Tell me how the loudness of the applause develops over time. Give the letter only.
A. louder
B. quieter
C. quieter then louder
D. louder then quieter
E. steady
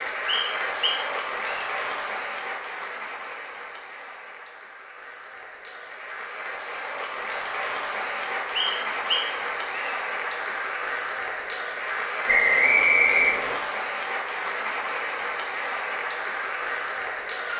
C.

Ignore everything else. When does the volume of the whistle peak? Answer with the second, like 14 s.
13 s.